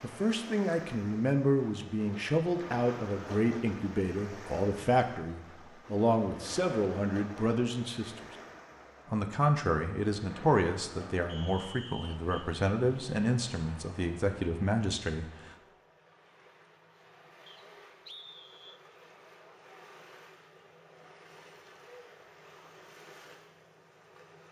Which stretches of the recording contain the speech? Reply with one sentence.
You can hear the speech from 0.0 to 8.2 s and from 9.1 to 15.3 s.